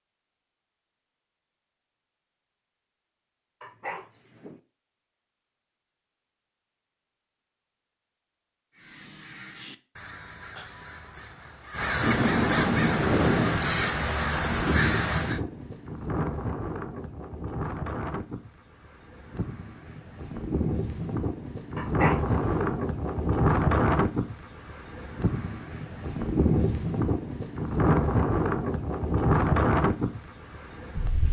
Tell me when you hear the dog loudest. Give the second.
22 s.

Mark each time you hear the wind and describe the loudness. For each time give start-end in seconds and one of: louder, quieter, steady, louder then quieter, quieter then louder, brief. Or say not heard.
11.9-31.2 quieter then louder.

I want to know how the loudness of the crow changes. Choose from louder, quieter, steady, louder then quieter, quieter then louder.
louder.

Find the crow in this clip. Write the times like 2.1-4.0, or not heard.
8.7-15.4.